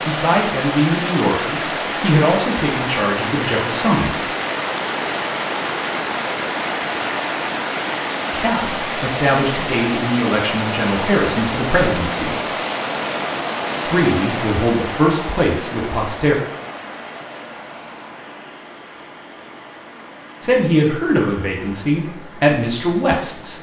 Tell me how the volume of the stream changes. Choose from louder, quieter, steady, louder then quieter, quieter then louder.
quieter.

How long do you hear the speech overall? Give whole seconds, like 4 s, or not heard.
14 s.